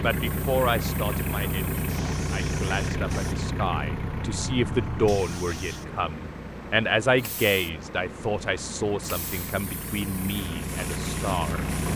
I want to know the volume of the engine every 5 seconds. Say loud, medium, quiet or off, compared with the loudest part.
loud, medium, loud.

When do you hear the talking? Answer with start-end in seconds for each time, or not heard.
0.0-11.7.